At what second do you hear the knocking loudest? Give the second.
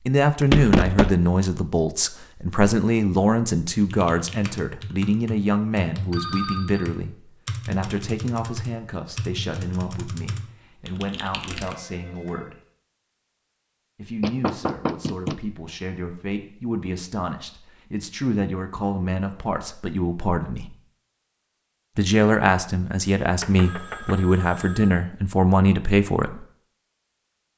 1 s.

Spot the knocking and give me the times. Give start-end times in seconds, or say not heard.
0.4-1.1, 14.2-15.3, 23.4-24.2.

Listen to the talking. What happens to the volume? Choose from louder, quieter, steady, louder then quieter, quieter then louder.
quieter then louder.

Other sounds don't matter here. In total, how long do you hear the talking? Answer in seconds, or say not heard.
24 s.